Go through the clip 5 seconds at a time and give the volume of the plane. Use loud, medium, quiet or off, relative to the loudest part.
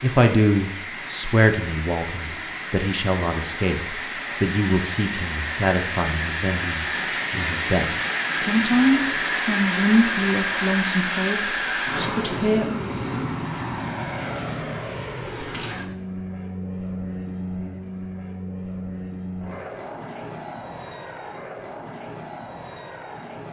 medium, loud, loud, medium, medium.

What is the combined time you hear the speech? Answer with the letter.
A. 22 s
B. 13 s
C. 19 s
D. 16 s
B.